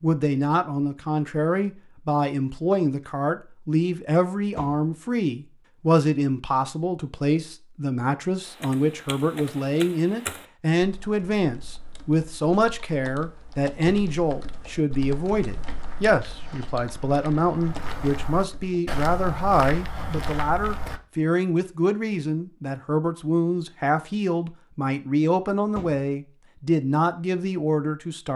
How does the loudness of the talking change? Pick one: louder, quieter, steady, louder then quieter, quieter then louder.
steady.